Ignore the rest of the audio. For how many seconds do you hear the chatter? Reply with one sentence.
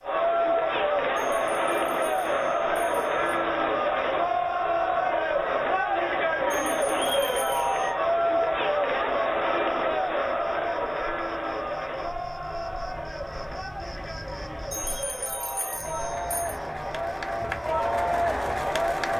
The chatter can be heard for 19 seconds in total.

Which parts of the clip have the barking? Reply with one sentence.
The barking can't be heard in this clip.